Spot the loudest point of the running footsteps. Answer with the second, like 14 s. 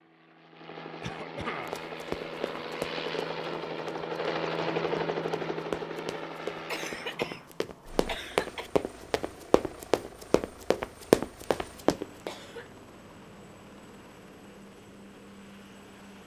11 s.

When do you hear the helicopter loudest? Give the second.
5 s.